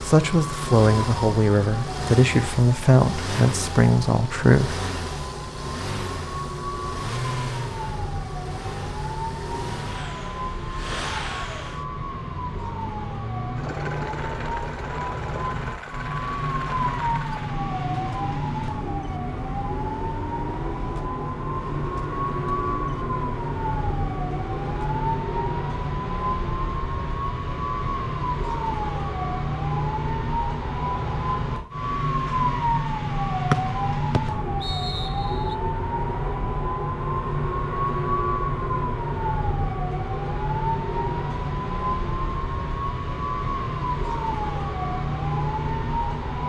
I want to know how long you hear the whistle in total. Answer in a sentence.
You can hear the whistle for 2 seconds altogether.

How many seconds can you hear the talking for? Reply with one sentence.
You can hear the talking for 5 seconds altogether.